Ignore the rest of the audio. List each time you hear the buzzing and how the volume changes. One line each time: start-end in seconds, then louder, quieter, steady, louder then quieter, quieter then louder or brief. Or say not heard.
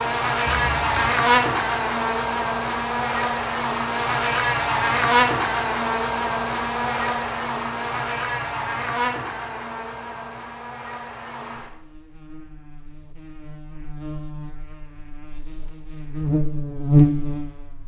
0.0-17.8 quieter then louder.